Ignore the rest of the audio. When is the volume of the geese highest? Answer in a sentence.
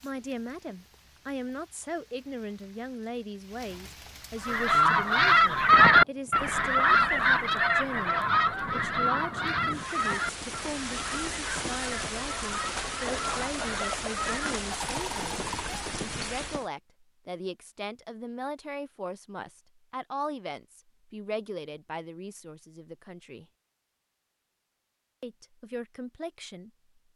The loudest moment of the geese is at 6 seconds.